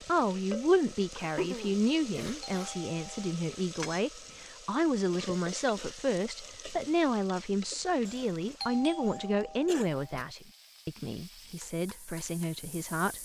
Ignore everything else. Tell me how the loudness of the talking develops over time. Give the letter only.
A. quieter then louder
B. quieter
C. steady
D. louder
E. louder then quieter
B.